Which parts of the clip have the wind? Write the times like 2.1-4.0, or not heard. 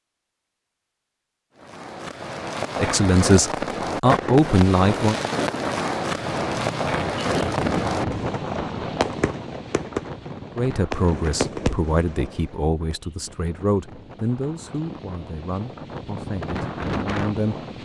6.1-17.8.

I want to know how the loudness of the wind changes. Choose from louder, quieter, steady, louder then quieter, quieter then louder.
quieter then louder.